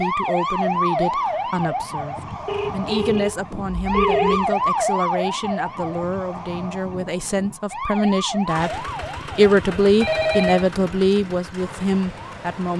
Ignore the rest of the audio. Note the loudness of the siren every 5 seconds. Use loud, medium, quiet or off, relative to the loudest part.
loud, medium, quiet.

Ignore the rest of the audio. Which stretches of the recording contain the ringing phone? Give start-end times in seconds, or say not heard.
2.5-4.5, 10.0-10.7.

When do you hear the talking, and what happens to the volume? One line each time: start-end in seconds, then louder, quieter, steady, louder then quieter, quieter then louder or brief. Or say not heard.
0.0-12.7 louder.